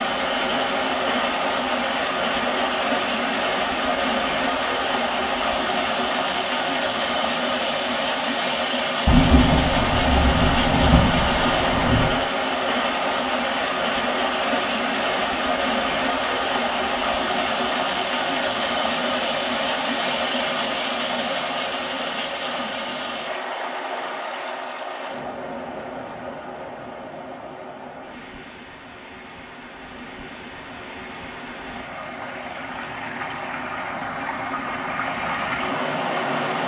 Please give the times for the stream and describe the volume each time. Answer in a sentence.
The stream can be heard from 0.0 to 36.6 s, getting quieter.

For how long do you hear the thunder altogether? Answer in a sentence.
The thunder can be heard for 3 seconds in total.